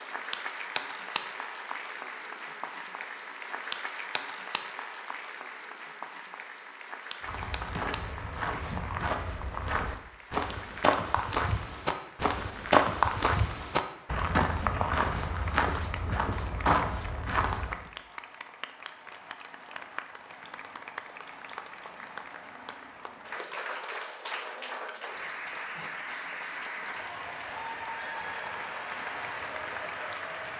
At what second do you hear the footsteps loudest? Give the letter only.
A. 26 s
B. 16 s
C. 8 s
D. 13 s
D.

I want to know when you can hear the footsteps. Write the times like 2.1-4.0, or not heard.
7.2-17.9.